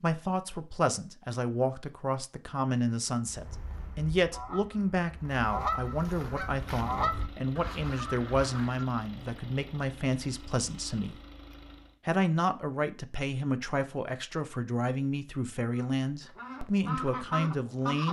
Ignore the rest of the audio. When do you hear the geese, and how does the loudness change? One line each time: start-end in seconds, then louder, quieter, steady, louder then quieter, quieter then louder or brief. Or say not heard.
3.2-8.8 louder then quieter
15.7-18.0 brief.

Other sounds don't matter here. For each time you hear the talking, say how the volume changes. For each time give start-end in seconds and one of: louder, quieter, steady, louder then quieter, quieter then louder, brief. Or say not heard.
0.0-11.2 steady
12.1-18.0 steady.